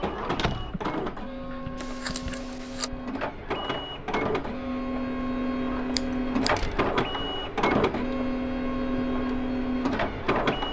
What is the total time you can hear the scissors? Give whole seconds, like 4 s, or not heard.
2 s.